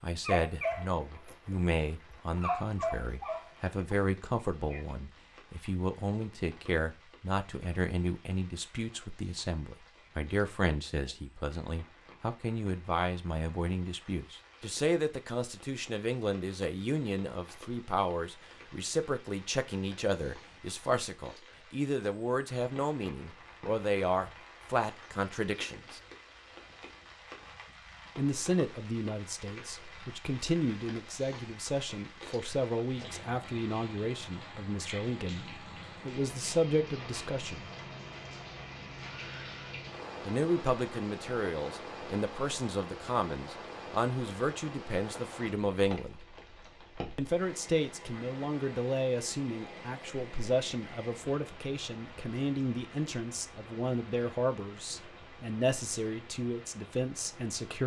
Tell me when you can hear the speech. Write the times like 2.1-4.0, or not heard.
0.0-26.0, 28.1-37.7, 40.2-46.2, 47.1-57.8.